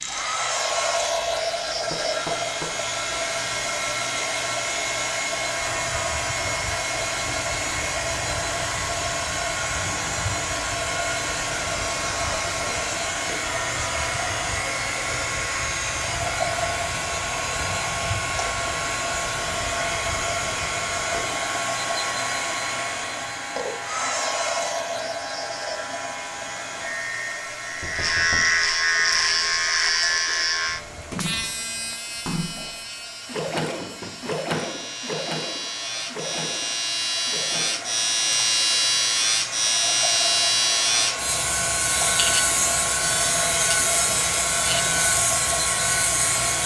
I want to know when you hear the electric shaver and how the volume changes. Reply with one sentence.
You can hear the electric shaver from 0.0 to 46.6 s, getting louder.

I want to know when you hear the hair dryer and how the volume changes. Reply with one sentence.
You can hear the hair dryer from 0.0 to 46.6 s, getting quieter then louder.